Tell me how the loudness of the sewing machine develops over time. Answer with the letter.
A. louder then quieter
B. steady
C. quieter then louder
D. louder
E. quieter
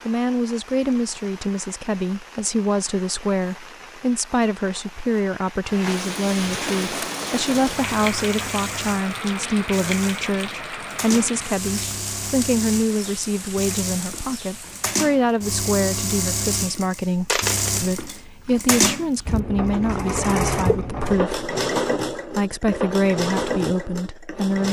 D.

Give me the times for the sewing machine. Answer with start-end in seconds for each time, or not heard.
6.8-24.6.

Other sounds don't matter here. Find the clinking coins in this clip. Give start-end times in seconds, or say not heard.
17.2-18.1.